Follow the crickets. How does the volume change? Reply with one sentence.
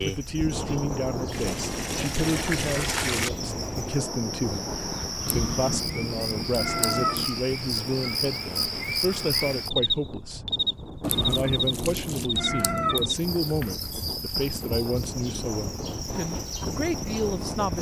The loudness of the crickets goes up, then down.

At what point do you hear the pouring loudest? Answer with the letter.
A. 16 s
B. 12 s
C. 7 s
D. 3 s
D.